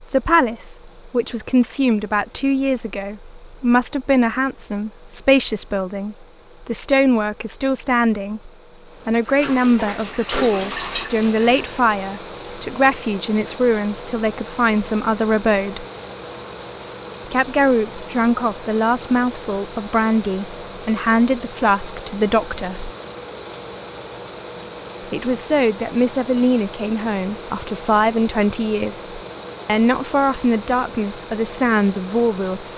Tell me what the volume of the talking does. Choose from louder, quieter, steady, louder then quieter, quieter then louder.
steady.